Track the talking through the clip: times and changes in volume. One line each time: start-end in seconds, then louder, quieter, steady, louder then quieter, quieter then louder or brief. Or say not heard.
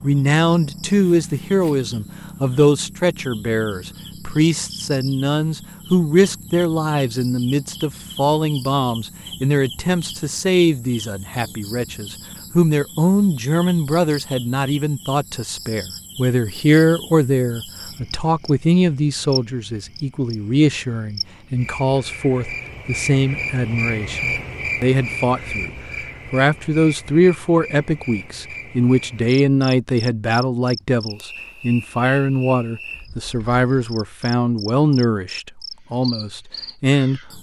0.0-25.7 steady
26.3-37.3 steady.